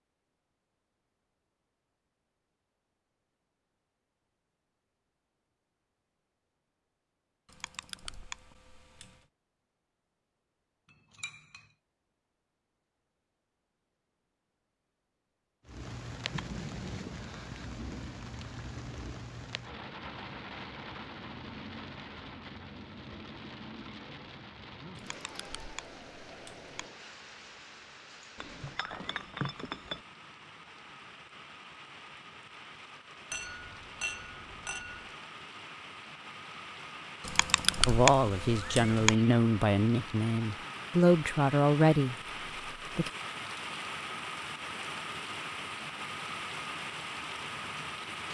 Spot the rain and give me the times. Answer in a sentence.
The rain can be heard from 15.7 to 48.2 s.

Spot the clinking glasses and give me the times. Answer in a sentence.
The clinking glasses can be heard from 10.9 to 11.7 s, from 28.4 to 30.0 s and from 33.3 to 35.1 s.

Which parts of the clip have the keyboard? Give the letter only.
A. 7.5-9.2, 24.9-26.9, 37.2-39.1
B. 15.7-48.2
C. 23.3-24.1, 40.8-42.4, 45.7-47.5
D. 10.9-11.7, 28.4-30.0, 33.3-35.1
A.